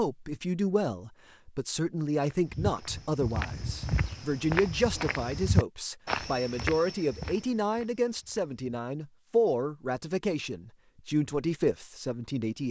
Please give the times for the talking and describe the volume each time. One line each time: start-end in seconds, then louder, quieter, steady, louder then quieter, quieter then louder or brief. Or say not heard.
0.0-12.6 steady.